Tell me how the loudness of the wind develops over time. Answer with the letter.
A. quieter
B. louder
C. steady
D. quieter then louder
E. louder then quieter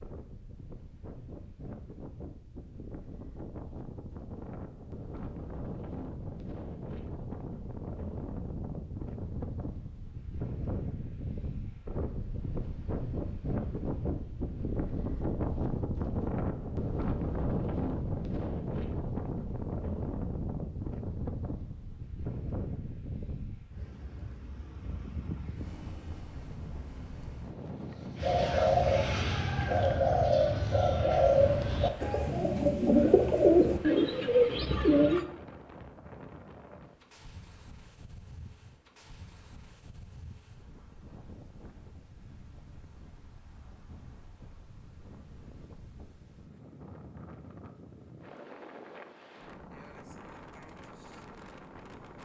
E.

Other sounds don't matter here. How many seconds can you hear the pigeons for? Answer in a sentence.
The pigeons can be heard for 7 seconds in total.